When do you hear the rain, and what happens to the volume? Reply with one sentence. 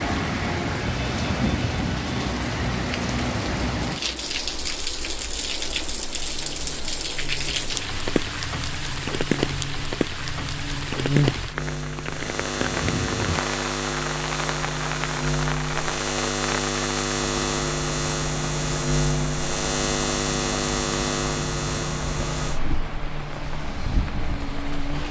You can hear the rain from 0.0 to 25.0 s, getting quieter.